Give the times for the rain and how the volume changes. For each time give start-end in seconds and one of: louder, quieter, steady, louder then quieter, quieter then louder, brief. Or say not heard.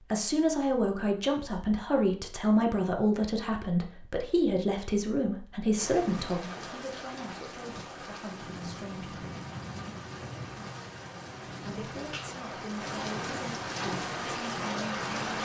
5.7-15.4 louder.